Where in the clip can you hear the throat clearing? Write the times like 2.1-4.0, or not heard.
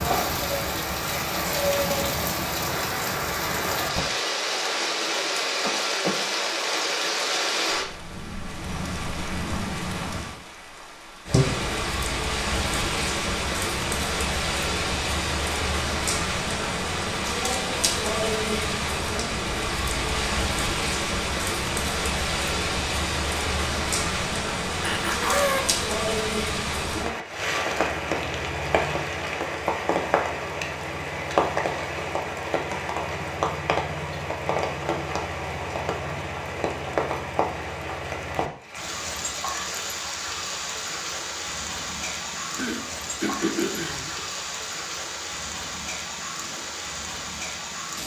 5.6-6.2, 24.8-25.6, 42.5-44.2.